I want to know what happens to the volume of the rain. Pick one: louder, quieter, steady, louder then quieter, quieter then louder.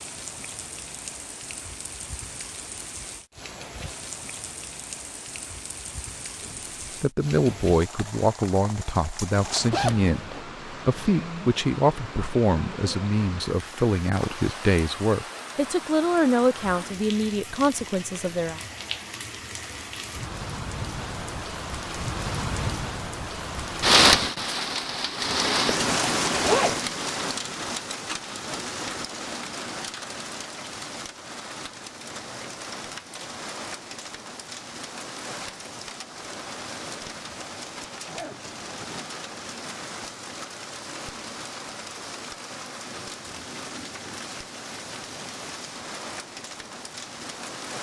louder then quieter.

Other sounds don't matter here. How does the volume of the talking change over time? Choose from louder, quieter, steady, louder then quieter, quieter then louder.
steady.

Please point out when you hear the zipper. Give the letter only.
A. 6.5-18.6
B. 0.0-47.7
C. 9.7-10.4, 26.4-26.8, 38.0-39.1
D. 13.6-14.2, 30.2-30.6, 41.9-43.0
C.